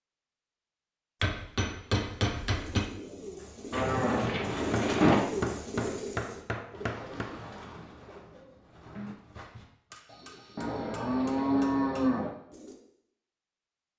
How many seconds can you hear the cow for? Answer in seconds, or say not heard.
3 s.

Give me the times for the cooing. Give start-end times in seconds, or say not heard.
2.4-12.8.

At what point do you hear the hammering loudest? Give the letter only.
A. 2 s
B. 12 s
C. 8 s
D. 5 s
A.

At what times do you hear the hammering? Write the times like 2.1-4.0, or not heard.
1.2-3.0, 4.7-7.2, 9.9-12.2.